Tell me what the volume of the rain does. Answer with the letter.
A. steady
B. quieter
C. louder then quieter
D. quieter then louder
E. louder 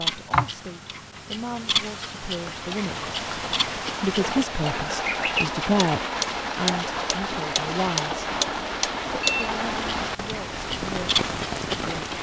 A.